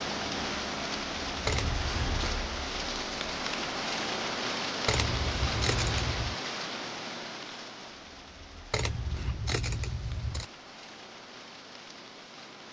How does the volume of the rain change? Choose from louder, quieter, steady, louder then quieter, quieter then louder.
quieter.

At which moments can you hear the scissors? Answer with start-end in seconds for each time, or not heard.
1.4-2.3, 4.8-6.3, 8.7-10.5.